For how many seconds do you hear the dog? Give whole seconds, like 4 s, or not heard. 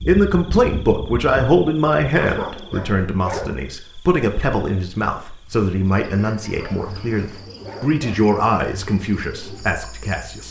3 s.